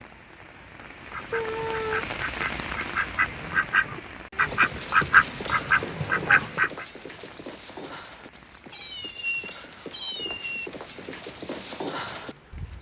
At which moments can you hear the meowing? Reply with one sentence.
You can hear the meowing from 1.3 to 2.0 s and from 8.7 to 10.7 s.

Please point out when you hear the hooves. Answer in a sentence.
You can hear the hooves from 4.5 to 12.7 s.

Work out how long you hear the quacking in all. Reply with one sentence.
The quacking can be heard for 6 seconds in total.